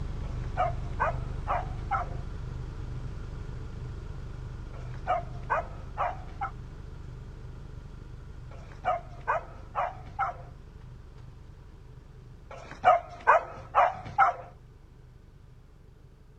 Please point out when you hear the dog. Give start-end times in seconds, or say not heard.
0.2-2.2, 4.8-6.5, 8.5-10.4, 12.5-14.4.